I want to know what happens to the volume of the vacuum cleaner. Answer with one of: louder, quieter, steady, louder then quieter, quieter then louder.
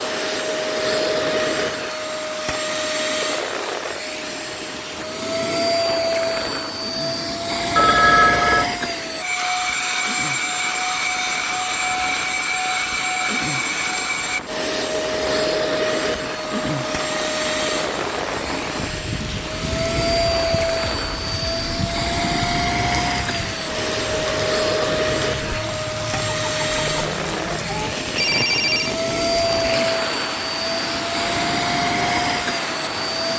steady.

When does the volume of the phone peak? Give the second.
8 s.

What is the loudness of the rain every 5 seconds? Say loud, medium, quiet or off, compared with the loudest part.
medium, medium, medium, loud, loud, loud, loud.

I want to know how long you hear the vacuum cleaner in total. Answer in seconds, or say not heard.
33 s.